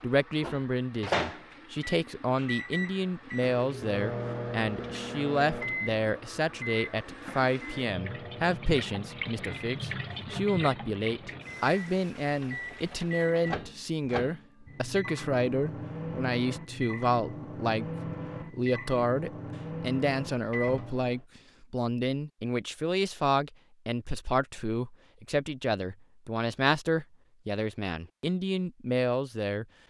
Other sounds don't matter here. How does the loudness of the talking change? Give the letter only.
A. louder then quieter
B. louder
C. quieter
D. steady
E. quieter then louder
D.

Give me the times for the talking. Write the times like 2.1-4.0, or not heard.
0.0-29.6.